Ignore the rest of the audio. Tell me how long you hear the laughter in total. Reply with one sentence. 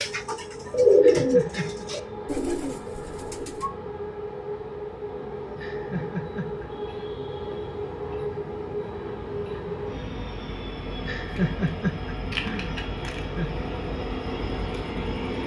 You can hear the laughter for 5 seconds altogether.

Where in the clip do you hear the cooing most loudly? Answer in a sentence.
The loudest moment of the cooing is at 1 second.